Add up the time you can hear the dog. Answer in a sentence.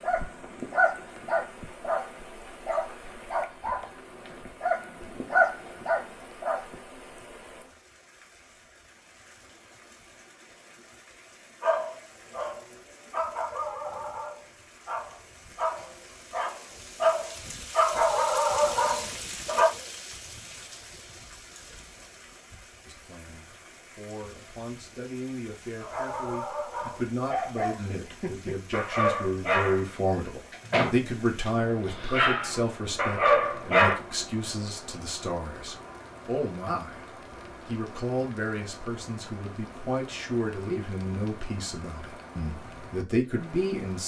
The dog can be heard for 23 seconds in total.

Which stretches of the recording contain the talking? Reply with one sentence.
The talking can be heard from 22.9 to 37.0 s and from 37.6 to 44.0 s.